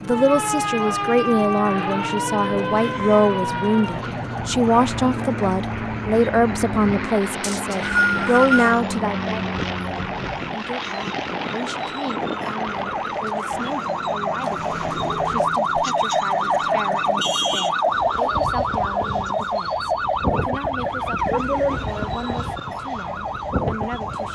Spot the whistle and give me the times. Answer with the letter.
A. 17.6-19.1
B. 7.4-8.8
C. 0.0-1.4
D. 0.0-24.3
B.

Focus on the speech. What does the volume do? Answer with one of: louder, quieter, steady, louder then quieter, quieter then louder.
quieter.